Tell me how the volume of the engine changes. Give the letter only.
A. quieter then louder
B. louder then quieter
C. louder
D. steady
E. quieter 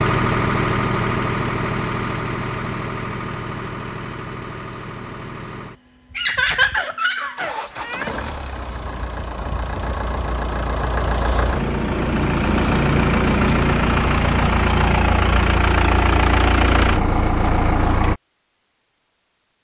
A.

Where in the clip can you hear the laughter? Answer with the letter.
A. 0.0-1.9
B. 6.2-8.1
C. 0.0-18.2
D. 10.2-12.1
B.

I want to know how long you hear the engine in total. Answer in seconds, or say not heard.
18 s.